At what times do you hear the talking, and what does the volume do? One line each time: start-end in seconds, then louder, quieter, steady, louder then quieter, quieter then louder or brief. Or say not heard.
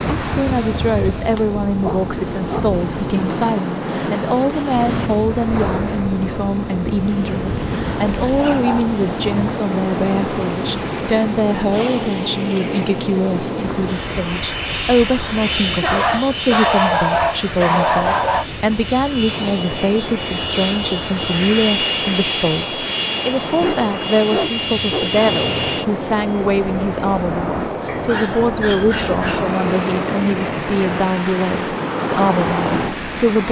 0.1-33.4 steady.